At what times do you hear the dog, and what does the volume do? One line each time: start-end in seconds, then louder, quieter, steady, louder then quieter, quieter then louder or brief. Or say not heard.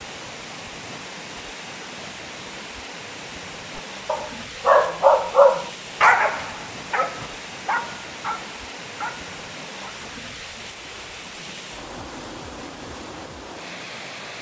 3.8-9.9 quieter.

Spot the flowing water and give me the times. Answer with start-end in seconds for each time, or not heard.
0.0-14.3.